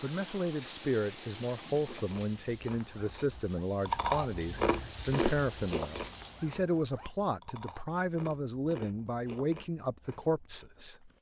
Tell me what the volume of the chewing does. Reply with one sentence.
The loudness of the chewing goes up, then down.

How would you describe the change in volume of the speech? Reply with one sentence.
The loudness of the speech stays about the same.